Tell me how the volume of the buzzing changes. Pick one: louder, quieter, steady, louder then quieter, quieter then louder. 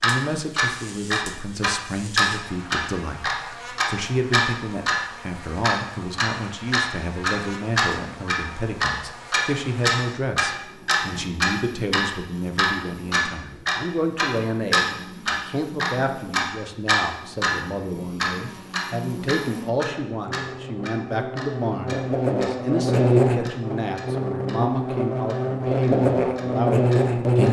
louder.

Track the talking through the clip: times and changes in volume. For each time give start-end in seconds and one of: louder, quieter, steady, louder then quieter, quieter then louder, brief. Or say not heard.
0.0-27.4 steady.